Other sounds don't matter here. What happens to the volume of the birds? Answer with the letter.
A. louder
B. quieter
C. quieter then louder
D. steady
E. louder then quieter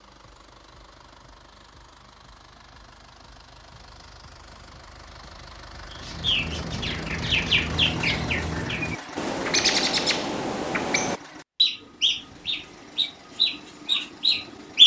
D.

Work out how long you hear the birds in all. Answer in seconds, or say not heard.
9 s.